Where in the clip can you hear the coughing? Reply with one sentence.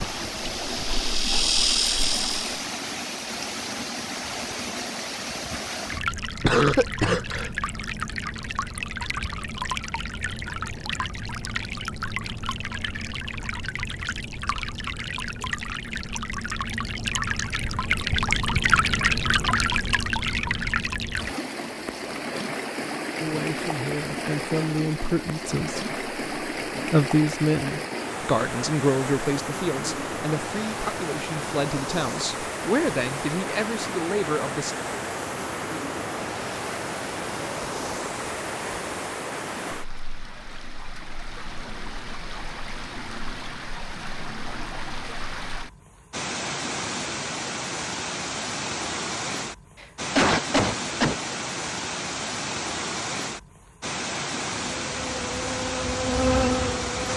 The coughing can be heard from 6.4 to 7.5 s and from 49.8 to 51.1 s.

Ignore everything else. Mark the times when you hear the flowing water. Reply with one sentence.
You can hear the flowing water from 0.0 to 57.1 s.